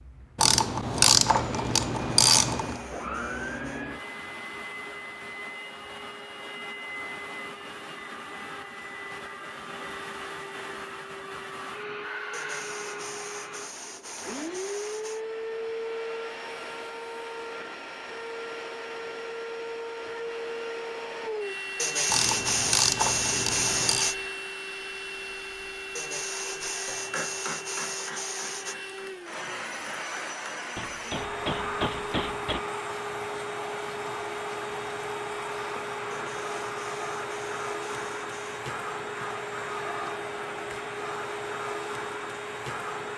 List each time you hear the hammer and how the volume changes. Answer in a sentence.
You can hear the hammer from 26.9 to 32.6 s, getting quieter then louder.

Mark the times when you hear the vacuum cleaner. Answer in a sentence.
The vacuum cleaner can be heard from 0.0 to 43.1 s.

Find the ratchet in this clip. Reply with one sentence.
You can hear the ratchet from 0.3 to 2.8 s and from 22.1 to 24.1 s.